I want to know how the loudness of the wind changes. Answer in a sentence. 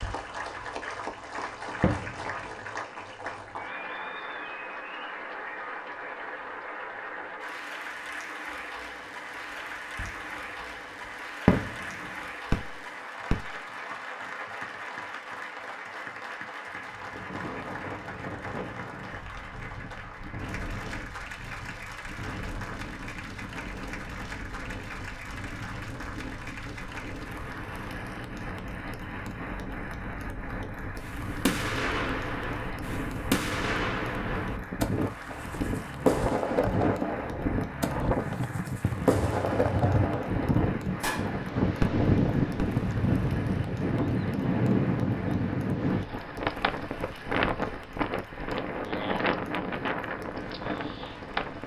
The loudness of the wind goes up.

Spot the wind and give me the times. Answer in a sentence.
You can hear the wind from 16.8 to 51.6 s.